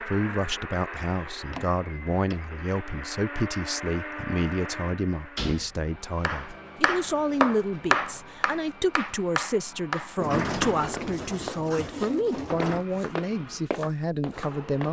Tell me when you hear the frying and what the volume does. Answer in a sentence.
The frying can't be heard in this clip.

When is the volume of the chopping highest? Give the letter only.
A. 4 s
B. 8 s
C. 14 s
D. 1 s
B.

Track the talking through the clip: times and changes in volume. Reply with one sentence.
You can hear the talking from 0.0 to 14.8 s, at a steady volume.